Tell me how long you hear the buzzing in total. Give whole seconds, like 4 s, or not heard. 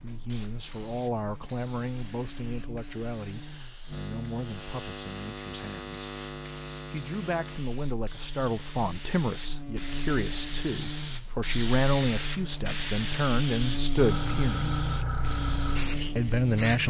17 s.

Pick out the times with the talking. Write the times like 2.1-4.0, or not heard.
0.0-6.0, 6.8-14.8, 16.1-16.8.